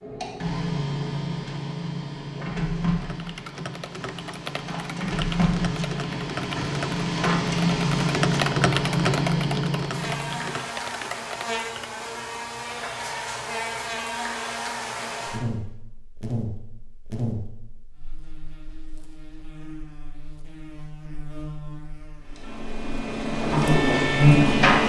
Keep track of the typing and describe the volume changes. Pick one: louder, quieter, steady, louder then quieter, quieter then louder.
louder then quieter.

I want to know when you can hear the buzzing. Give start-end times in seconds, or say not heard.
9.9-24.8.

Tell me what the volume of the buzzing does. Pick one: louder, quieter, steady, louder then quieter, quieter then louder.
quieter then louder.